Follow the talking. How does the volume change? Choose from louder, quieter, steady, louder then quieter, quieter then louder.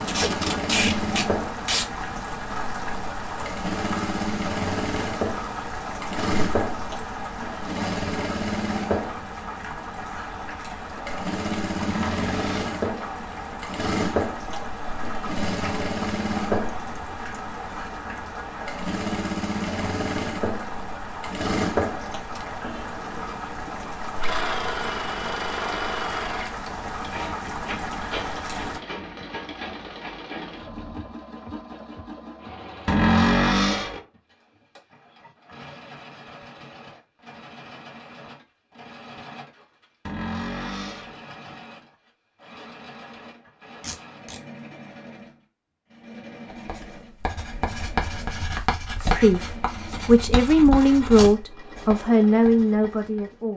steady.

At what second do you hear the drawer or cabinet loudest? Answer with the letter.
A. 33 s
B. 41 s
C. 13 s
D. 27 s
A.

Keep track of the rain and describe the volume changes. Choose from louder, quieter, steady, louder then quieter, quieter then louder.
steady.